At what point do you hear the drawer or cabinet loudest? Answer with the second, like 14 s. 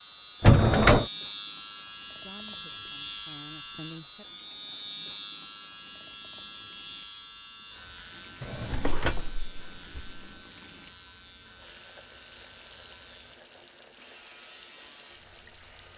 1 s.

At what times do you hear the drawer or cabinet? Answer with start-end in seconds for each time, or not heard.
0.4-1.1, 8.4-10.2.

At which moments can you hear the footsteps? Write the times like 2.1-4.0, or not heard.
not heard.